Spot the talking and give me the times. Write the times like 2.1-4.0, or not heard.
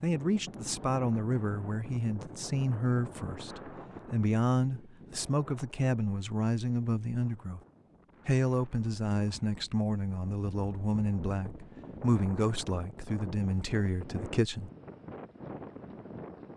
0.0-7.6, 8.2-14.7.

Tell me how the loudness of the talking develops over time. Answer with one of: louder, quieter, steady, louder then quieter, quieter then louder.
steady.